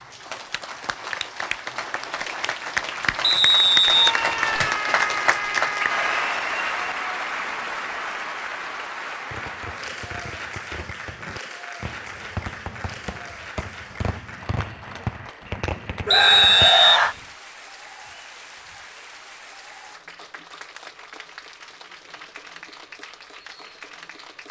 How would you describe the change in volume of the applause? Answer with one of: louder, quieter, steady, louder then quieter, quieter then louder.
quieter.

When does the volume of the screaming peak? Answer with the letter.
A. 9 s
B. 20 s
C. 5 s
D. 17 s
D.